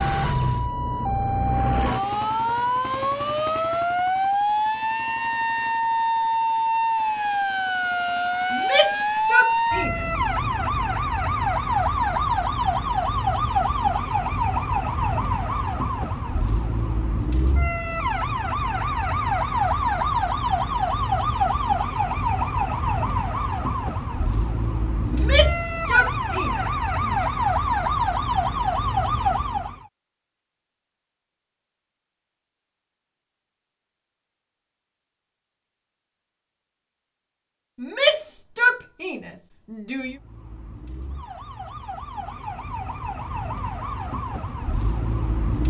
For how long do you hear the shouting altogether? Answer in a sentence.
You can hear the shouting for 6 seconds altogether.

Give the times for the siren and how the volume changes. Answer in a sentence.
You can hear the siren from 0.0 to 29.9 s, at a steady volume; and from 40.0 to 45.6 s, getting louder.